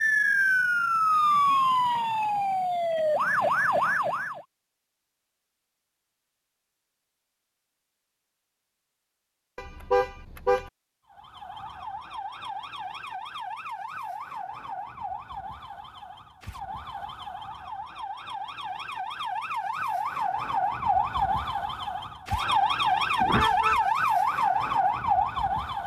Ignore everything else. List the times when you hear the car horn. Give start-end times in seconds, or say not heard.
9.6-10.7, 23.2-23.9.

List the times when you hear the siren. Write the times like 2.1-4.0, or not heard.
0.0-4.5, 11.1-25.8.